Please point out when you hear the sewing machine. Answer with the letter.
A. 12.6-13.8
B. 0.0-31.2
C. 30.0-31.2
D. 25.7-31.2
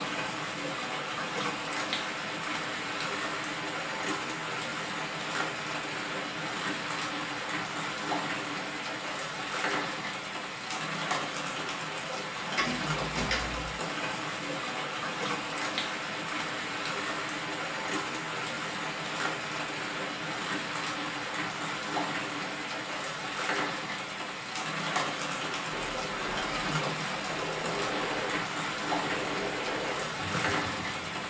D.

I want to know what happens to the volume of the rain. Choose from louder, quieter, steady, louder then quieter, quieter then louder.
steady.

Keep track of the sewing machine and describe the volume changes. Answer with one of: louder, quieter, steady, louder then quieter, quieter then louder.
steady.